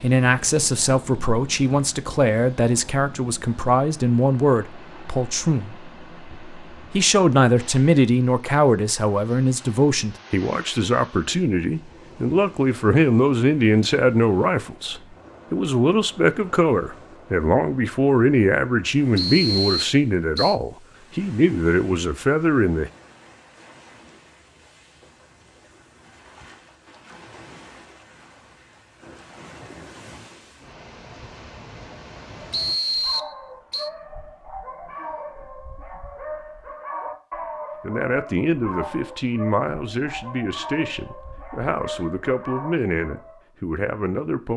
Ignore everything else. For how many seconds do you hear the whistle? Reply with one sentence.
You can hear the whistle for 3 seconds altogether.